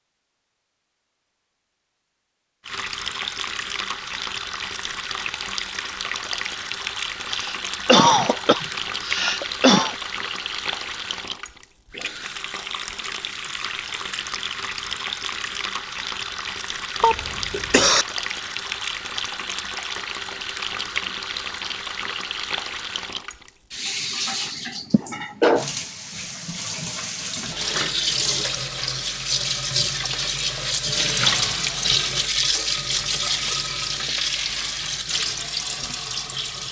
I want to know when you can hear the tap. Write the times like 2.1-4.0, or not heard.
2.6-36.6.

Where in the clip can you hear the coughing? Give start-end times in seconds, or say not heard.
7.3-9.9, 17.0-18.1, 24.9-25.6.